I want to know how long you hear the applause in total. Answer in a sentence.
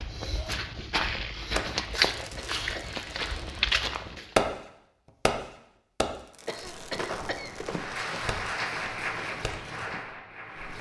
The applause can be heard for 3 seconds in total.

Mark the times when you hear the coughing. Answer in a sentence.
The coughing can be heard from 1.9 to 3.0 s and from 6.5 to 7.5 s.